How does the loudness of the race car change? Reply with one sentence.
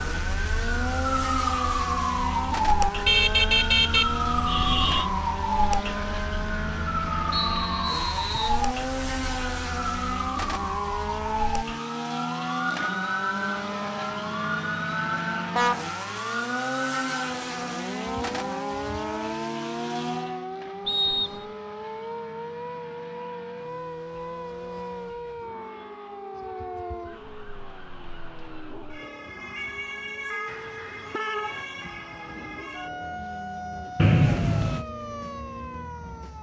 The volume of the race car goes down.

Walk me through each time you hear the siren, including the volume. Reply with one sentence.
You can hear the siren from 0.0 to 36.3 s, getting quieter.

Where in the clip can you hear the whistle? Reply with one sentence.
You can hear the whistle from 7.3 to 8.6 s, from 20.9 to 21.4 s and from 34.0 to 34.9 s.